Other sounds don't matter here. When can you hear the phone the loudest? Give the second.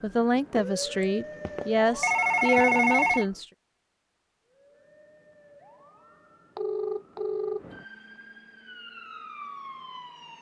3 s.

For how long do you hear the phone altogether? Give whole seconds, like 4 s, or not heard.
4 s.